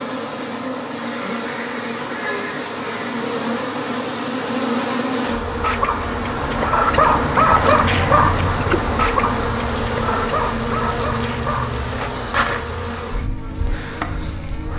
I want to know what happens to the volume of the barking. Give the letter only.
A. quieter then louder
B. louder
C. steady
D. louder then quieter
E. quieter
E.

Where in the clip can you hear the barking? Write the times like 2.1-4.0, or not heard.
5.6-11.8.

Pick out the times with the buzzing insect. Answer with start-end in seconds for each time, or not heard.
0.0-14.7.